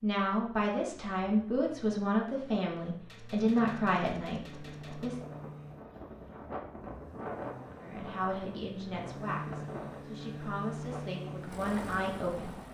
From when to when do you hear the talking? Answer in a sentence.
You can hear the talking from 0.0 to 5.2 s and from 7.8 to 12.6 s.